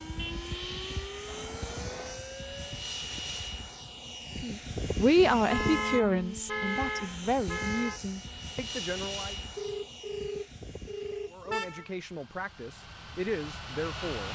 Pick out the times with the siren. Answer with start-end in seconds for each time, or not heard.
0.0-2.9.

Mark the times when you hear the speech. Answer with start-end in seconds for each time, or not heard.
4.4-9.3, 11.3-14.3.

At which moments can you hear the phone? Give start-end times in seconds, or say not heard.
1.2-2.2, 9.6-11.5.